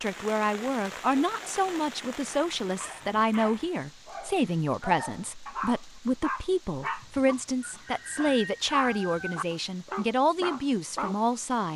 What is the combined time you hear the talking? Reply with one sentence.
The talking can be heard for 12 seconds in total.